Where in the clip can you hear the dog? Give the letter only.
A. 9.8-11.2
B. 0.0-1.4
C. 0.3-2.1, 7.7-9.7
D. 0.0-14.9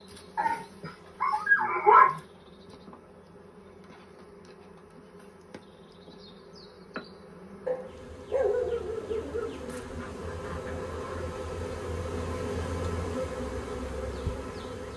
C.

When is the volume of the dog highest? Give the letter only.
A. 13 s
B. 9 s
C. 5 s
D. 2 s
D.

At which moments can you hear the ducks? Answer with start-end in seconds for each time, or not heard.
9.8-11.2.